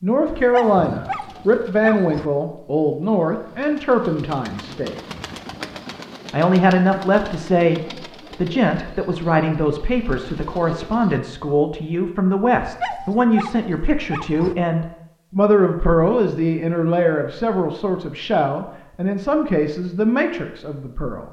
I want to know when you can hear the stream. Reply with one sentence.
You can't hear the stream here.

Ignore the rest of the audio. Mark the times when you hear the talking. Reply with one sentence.
The talking can be heard from 0.0 to 5.0 s and from 6.3 to 21.2 s.